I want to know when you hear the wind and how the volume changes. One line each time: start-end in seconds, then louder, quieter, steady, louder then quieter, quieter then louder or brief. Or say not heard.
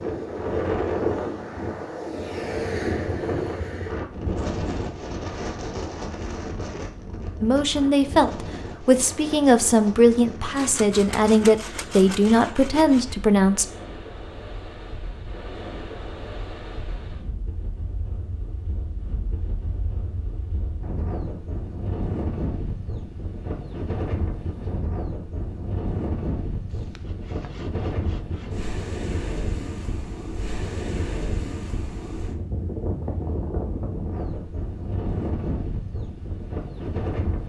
0.0-37.4 quieter then louder.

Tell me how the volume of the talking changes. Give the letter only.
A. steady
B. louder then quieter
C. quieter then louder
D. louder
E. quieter
A.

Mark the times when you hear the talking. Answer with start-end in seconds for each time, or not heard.
7.4-13.7.